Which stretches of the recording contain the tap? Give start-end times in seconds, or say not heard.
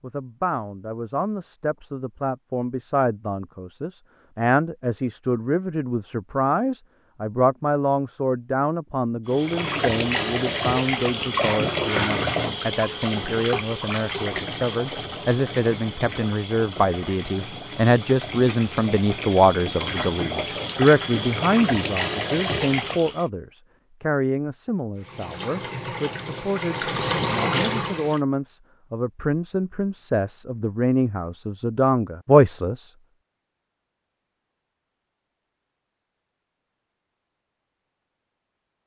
9.2-23.3, 24.9-28.2.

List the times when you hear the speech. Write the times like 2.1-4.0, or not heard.
0.0-32.9.